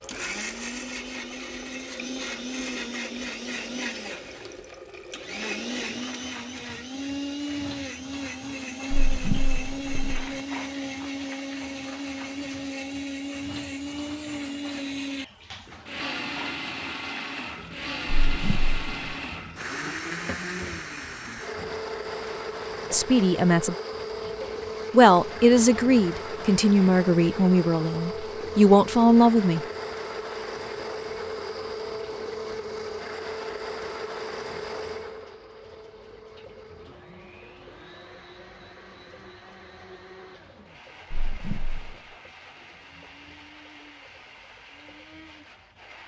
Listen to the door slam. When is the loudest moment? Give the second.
9 s.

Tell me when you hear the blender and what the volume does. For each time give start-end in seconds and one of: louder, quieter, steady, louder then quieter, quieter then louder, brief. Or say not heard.
0.0-46.0 quieter.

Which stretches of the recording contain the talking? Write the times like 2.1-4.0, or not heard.
22.9-23.8, 24.9-29.6.